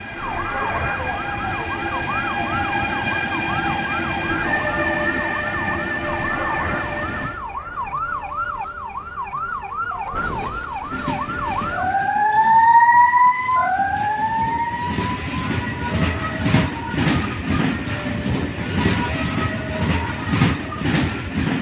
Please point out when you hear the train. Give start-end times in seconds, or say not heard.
0.0-7.5, 10.8-21.5.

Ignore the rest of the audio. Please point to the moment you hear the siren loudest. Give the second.
13 s.